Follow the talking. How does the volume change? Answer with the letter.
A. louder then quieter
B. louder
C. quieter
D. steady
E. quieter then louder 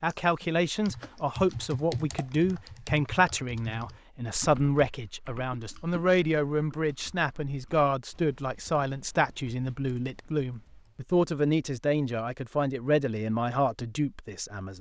D.